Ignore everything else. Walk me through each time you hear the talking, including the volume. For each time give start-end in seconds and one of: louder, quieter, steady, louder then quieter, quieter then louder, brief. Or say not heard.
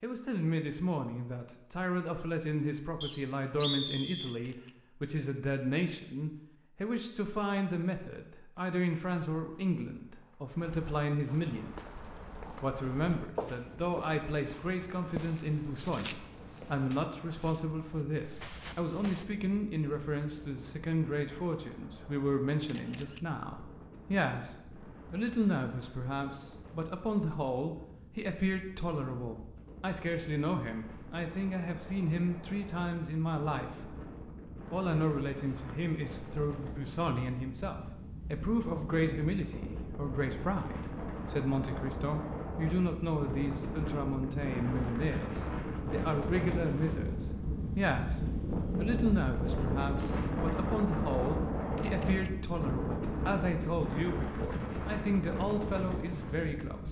0.0-34.0 steady
34.7-56.8 steady.